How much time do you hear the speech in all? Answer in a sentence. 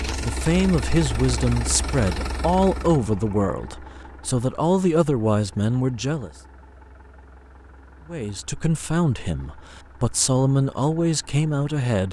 You can hear the speech for 10 seconds altogether.